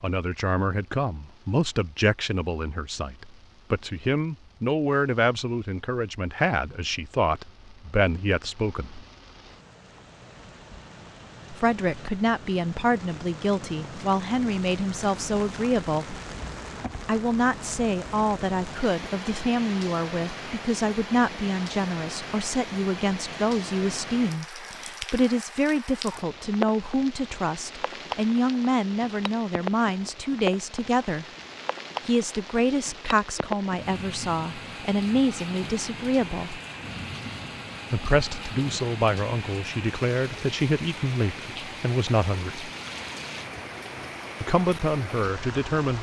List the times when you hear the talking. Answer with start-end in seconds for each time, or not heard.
0.0-9.0, 11.5-16.1, 17.1-31.2, 32.0-36.6, 37.9-42.7, 44.4-45.9.